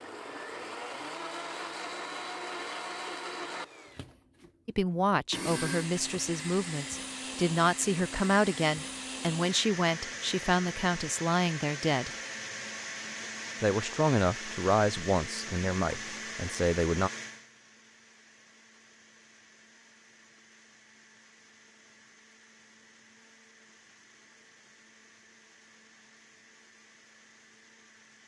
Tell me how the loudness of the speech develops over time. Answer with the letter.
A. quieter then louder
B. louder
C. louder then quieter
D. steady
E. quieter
D.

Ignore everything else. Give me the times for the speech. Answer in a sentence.
The speech can be heard from 4.7 to 12.1 s and from 13.6 to 17.1 s.